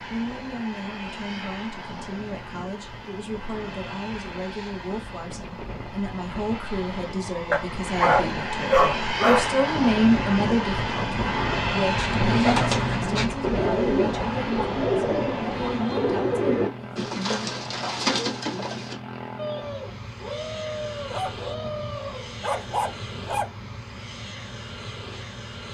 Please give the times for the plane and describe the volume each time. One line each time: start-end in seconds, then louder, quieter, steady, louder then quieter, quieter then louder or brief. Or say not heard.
0.0-25.6 louder then quieter.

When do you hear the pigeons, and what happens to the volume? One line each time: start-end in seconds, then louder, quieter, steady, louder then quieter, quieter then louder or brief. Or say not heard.
12.1-22.4 quieter.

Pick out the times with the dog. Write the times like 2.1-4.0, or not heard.
7.5-9.5, 21.1-23.5.